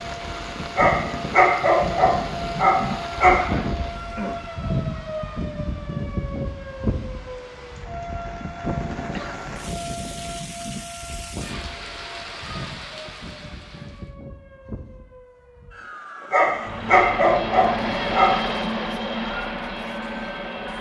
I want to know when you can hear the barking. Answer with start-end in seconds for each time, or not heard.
0.8-3.4, 16.3-18.4.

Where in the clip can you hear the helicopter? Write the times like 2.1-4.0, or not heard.
16.4-20.7.